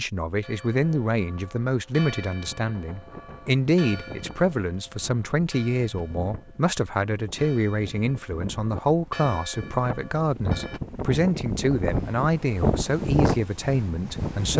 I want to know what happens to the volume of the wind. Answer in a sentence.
The loudness of the wind goes up.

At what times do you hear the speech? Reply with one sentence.
The speech can be heard from 0.0 to 14.5 s.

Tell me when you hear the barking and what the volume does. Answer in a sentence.
You can't hear the barking here.